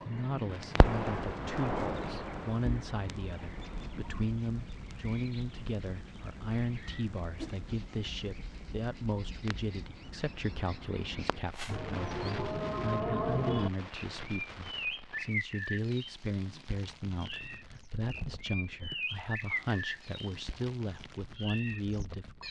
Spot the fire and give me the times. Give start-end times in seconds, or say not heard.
0.5-22.4.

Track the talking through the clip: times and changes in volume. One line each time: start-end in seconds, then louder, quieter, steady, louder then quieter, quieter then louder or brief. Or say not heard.
0.1-22.4 steady.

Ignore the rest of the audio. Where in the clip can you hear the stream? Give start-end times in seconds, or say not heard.
not heard.